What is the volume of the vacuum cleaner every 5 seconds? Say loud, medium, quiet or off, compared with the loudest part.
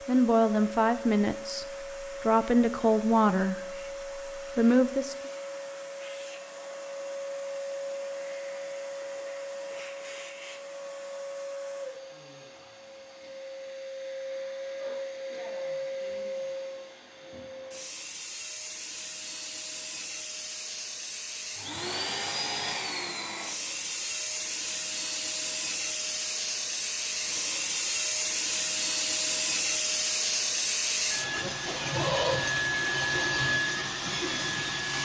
medium, medium, medium, medium, medium, loud, loud.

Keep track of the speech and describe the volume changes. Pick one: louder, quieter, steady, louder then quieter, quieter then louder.
quieter then louder.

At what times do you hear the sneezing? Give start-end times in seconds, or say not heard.
not heard.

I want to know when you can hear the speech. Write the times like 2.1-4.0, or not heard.
0.1-5.2.